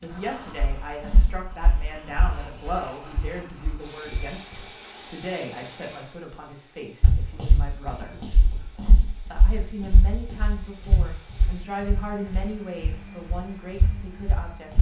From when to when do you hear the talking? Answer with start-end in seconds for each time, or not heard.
0.0-8.2, 9.3-14.7.